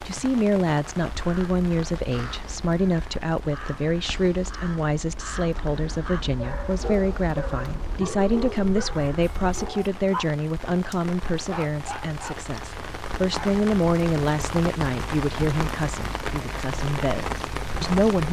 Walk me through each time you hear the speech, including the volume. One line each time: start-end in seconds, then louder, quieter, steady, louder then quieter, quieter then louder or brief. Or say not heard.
0.1-18.2 steady.